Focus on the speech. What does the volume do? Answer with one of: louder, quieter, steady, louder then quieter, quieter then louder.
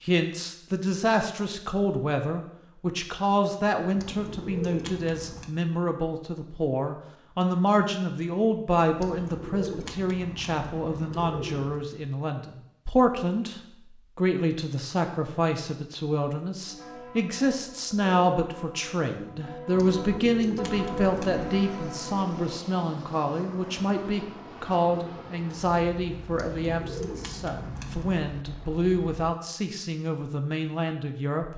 steady.